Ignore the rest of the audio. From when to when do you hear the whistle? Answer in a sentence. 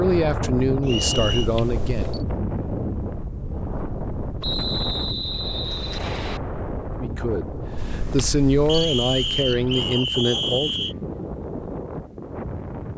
You can hear the whistle from 0.8 to 1.5 s, from 4.4 to 6.4 s and from 8.7 to 10.9 s.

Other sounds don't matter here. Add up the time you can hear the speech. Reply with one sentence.
You can hear the speech for 6 seconds altogether.